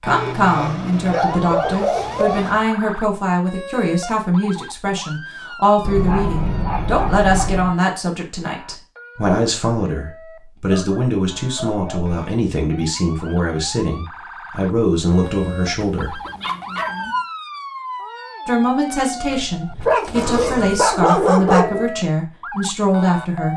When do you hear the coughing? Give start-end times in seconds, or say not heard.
not heard.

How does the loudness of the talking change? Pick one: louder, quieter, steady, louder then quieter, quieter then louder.
steady.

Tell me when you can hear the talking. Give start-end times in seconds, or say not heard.
0.0-16.2, 18.4-23.5.